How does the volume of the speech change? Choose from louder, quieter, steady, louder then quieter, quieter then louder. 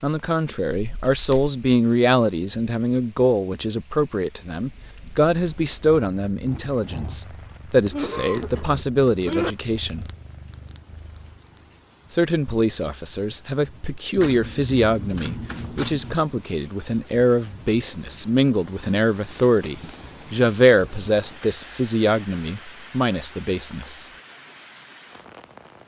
steady.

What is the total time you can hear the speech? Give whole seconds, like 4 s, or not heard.
22 s.